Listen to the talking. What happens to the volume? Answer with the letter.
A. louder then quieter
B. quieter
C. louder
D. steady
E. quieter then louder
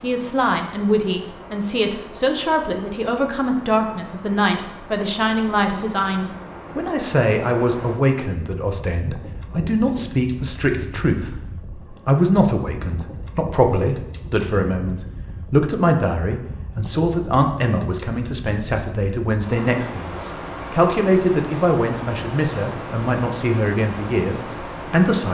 D.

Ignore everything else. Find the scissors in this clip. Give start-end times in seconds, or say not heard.
not heard.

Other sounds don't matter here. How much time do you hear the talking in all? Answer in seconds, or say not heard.
25 s.